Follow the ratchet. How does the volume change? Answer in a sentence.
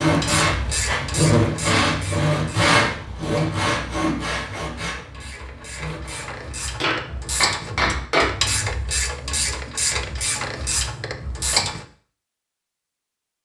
The loudness of the ratchet goes down, then up.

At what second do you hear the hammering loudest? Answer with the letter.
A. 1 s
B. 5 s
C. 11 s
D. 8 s
D.